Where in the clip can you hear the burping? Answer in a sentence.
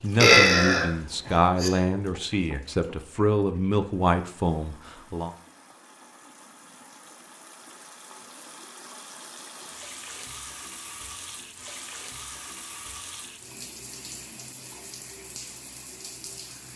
You can hear the burping from 0.1 to 1.7 s.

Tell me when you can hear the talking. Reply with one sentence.
The talking can be heard from 0.0 to 5.3 s.